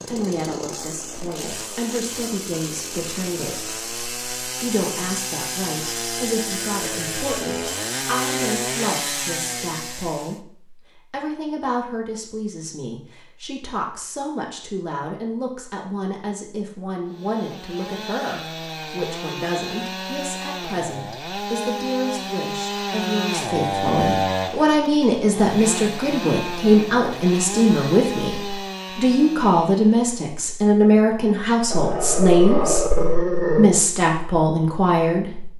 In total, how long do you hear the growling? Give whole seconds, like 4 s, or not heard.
2 s.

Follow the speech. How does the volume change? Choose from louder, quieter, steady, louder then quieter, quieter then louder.
louder.